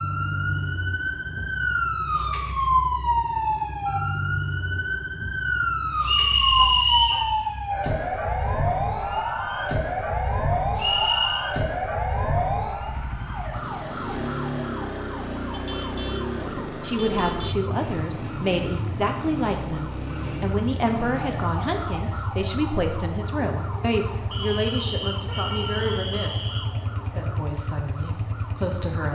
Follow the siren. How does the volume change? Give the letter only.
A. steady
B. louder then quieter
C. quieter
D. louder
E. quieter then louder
C.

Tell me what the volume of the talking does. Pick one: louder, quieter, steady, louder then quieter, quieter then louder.
quieter.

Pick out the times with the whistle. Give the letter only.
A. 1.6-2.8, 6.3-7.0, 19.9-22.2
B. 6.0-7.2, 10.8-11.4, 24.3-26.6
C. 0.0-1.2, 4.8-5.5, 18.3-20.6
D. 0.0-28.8
B.